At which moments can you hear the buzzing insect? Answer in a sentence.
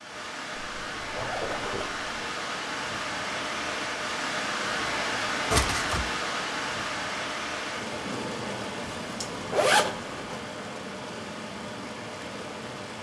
The buzzing insect can't be heard in this clip.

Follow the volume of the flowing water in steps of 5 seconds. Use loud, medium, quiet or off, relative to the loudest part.
loud, loud, medium.